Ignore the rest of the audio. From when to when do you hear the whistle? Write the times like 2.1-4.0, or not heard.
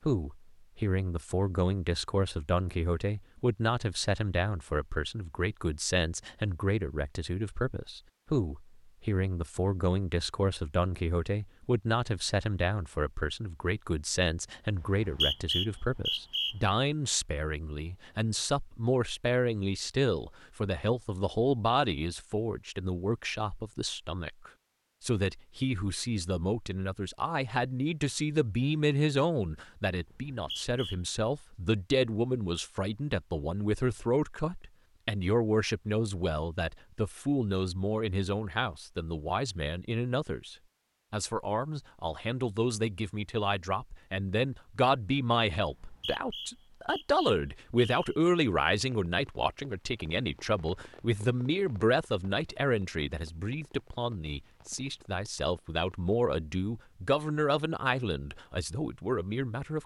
14.8-16.6, 30.1-30.9, 45.6-48.1.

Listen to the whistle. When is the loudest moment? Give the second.
15 s.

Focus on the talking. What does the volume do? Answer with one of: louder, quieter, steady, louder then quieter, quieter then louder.
steady.